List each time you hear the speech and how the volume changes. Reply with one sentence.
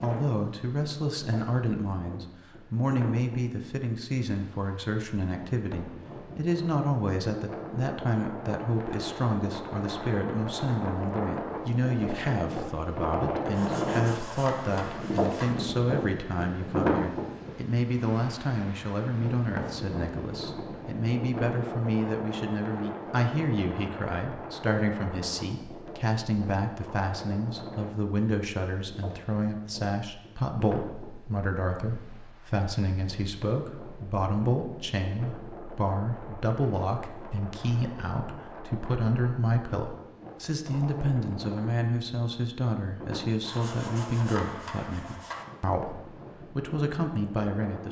You can hear the speech from 0.0 to 47.8 s, at a steady volume.